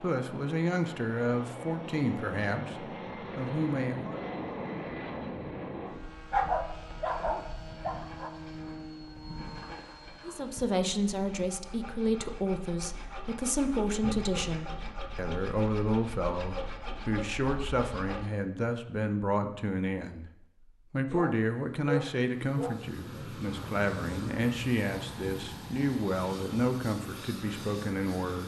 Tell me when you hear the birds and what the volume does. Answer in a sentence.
The birds can't be heard in this clip.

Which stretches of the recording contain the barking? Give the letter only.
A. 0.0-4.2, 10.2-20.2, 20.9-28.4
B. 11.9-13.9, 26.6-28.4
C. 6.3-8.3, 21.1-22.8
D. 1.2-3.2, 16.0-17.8
C.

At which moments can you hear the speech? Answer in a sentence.
The speech can be heard from 0.0 to 4.2 s, from 10.2 to 20.2 s and from 20.9 to 28.4 s.